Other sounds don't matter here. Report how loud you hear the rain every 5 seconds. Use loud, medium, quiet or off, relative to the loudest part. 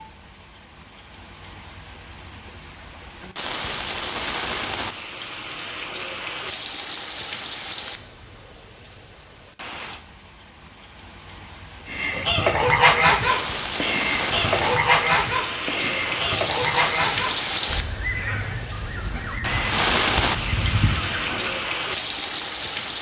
medium, medium, medium, loud, loud.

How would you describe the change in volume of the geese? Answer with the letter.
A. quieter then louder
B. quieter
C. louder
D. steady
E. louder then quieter
B.